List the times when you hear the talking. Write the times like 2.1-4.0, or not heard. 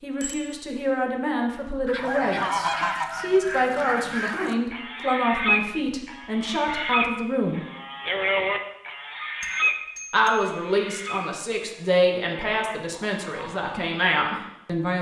0.0-7.7, 10.1-14.9.